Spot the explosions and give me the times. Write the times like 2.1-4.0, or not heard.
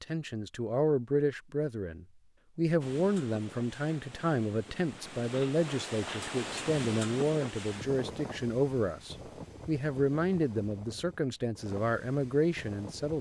not heard.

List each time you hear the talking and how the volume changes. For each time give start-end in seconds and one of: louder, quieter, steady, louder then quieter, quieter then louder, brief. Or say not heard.
0.0-13.1 steady.